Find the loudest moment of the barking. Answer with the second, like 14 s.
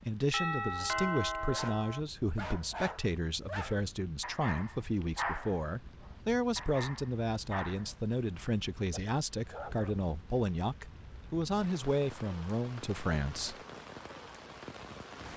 5 s.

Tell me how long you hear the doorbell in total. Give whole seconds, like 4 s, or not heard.
2 s.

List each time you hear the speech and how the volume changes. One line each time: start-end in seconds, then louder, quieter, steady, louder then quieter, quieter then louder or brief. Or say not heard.
0.0-13.6 steady.